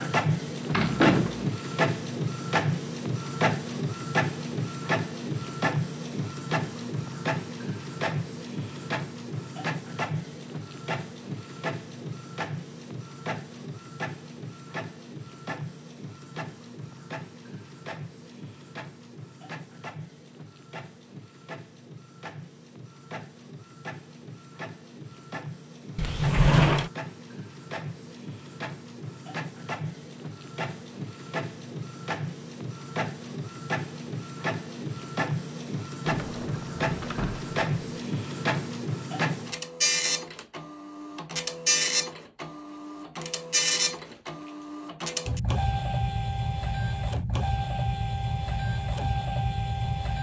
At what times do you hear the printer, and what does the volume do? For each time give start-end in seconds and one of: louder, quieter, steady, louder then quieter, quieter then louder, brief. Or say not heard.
0.0-50.1 quieter then louder.